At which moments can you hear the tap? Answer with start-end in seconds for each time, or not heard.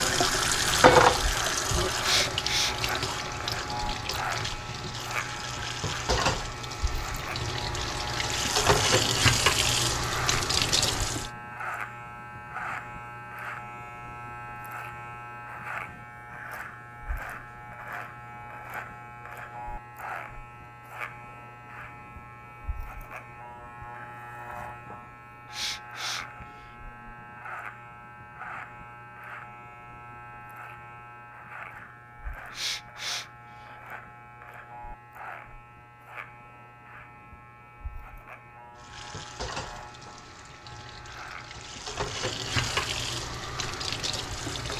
0.0-11.3, 38.8-44.7.